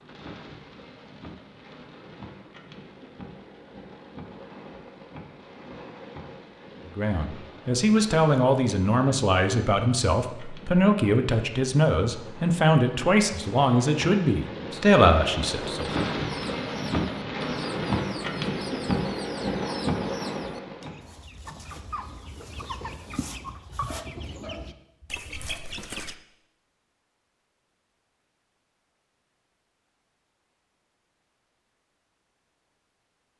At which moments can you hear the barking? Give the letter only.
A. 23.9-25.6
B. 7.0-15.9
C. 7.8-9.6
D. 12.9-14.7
A.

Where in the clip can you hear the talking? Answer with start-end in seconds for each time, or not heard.
7.0-15.9.